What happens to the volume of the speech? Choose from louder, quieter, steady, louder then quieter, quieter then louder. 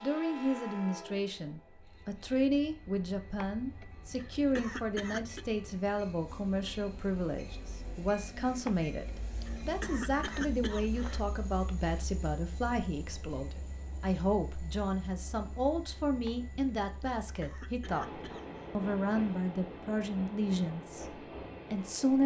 steady.